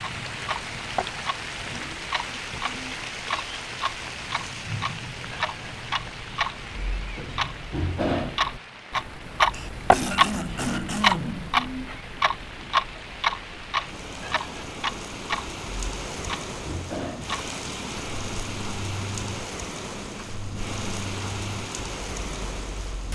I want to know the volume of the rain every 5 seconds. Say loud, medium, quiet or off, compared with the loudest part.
loud, medium, medium, loud, loud.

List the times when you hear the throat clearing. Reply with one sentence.
The throat clearing can be heard from 9.5 to 11.6 s.